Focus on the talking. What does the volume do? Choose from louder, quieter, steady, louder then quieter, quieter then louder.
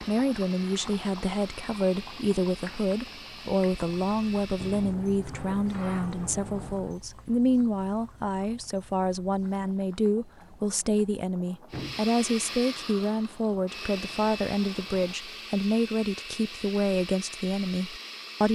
steady.